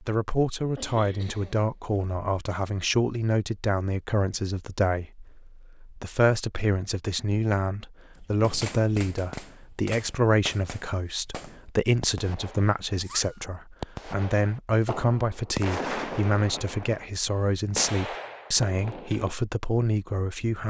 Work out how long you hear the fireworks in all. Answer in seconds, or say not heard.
11 s.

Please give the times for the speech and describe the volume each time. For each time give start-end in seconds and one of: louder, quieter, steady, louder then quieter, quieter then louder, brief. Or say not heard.
0.0-20.6 steady.